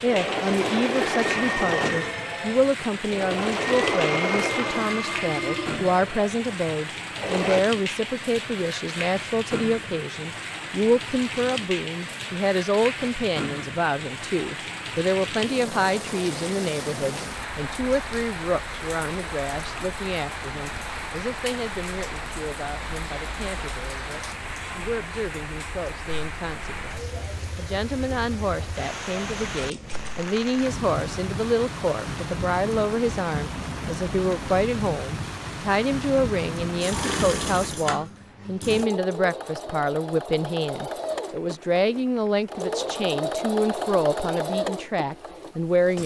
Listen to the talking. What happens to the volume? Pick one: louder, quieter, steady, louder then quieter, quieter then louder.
quieter then louder.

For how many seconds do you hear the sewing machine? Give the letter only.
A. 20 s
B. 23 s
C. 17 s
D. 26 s
C.